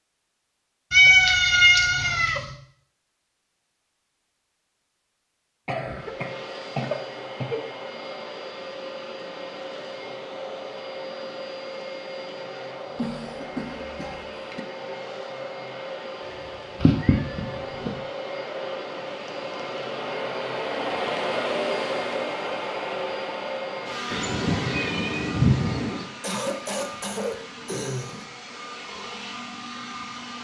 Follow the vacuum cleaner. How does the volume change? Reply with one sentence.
The loudness of the vacuum cleaner goes up, then down.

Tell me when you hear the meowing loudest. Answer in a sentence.
The loudest moment of the meowing is at 1 second.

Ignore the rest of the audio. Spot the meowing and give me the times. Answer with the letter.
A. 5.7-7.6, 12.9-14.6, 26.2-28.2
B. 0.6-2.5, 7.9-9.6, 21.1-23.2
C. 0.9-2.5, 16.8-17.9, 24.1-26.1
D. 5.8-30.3
C.